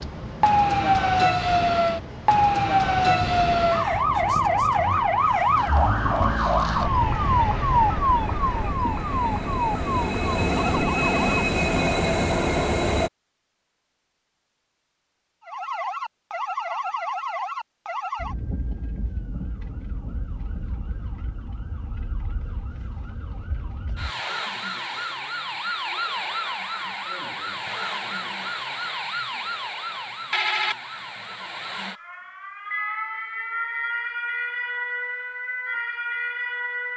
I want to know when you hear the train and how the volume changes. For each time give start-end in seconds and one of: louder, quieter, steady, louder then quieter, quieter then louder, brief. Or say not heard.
0.0-13.1 louder.